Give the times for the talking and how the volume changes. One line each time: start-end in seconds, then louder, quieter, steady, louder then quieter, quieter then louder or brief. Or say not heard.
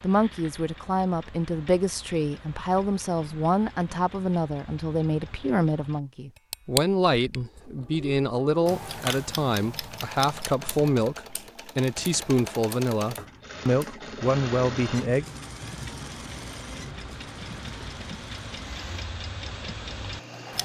0.0-15.2 steady.